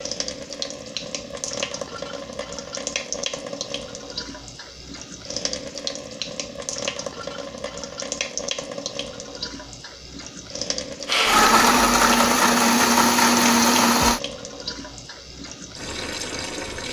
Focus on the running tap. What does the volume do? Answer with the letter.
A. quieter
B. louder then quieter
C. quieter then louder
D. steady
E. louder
D.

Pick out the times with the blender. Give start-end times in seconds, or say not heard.
11.1-14.2.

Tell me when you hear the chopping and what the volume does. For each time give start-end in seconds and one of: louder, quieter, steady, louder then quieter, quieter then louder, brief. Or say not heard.
not heard.